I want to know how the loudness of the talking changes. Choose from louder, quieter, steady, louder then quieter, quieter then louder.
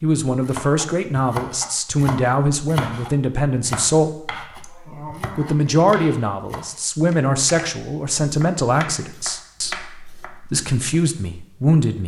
steady.